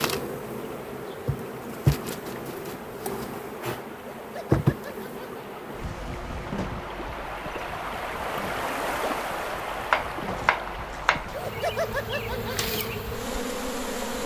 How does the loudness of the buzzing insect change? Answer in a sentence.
The loudness of the buzzing insect goes down, then up.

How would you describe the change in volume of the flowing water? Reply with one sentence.
The loudness of the flowing water goes up, then down.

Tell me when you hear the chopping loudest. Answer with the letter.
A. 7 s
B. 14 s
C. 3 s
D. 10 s
D.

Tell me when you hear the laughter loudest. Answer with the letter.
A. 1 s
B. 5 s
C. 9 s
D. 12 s
D.